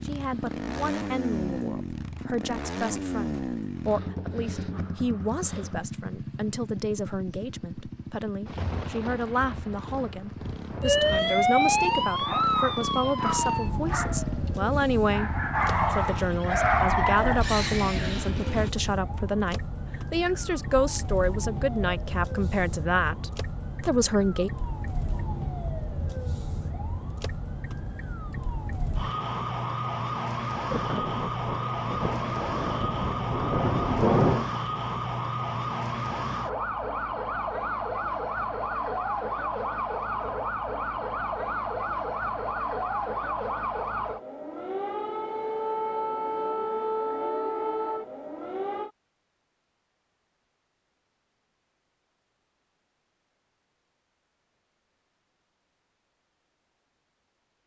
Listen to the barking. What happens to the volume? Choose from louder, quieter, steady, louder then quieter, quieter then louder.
louder.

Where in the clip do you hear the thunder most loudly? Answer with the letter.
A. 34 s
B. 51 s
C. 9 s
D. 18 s
A.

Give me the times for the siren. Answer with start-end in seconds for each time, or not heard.
10.8-48.9.